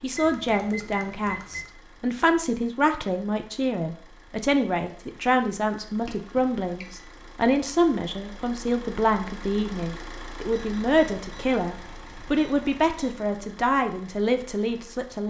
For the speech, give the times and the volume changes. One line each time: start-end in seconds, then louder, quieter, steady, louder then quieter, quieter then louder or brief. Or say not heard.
0.0-15.2 steady.